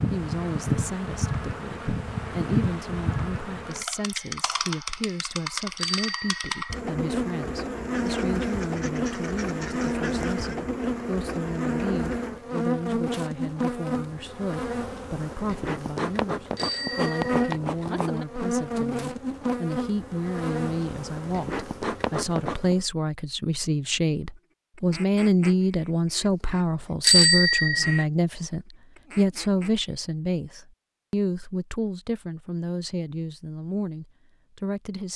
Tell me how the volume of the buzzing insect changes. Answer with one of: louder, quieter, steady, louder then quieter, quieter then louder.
steady.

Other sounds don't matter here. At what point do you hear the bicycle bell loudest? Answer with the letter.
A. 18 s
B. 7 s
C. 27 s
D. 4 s
C.